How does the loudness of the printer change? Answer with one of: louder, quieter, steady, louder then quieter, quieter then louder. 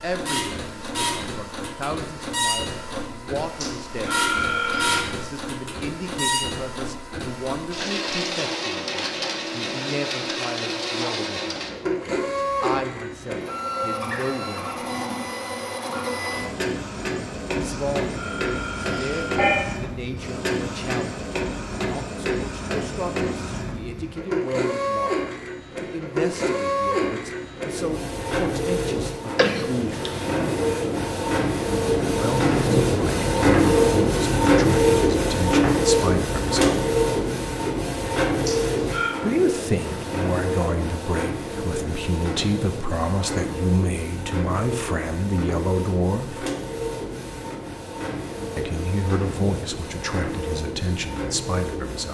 louder then quieter.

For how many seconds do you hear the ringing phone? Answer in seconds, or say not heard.
4 s.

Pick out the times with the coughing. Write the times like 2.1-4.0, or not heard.
29.4-30.3.